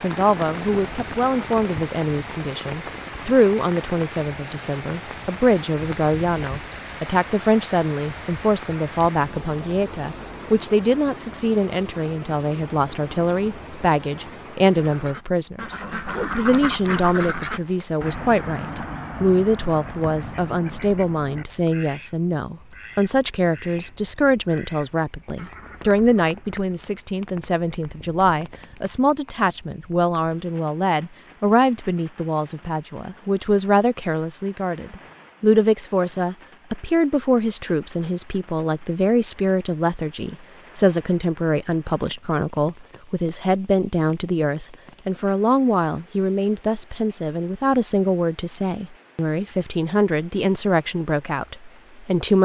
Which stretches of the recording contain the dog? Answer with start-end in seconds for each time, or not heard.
not heard.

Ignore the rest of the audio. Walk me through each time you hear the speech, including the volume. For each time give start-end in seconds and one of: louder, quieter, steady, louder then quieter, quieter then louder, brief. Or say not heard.
0.0-52.4 steady.